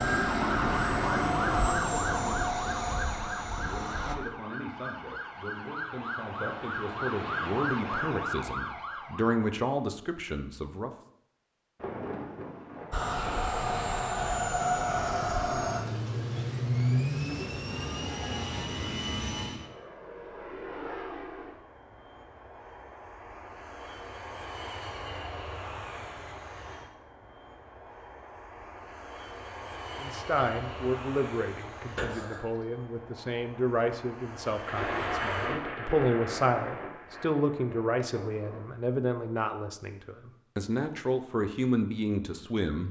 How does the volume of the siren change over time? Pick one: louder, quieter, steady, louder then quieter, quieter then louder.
quieter then louder.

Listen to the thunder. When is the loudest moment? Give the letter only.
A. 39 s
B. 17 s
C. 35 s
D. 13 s
C.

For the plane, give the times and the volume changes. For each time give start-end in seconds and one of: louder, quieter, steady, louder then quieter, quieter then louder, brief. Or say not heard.
0.0-4.2 quieter
12.9-35.5 quieter.